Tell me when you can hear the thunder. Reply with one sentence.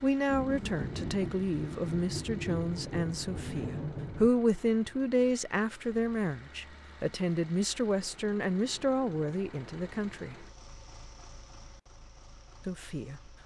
You can hear the thunder from 0.2 to 4.3 s.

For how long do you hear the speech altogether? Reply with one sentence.
The speech can be heard for 11 seconds in total.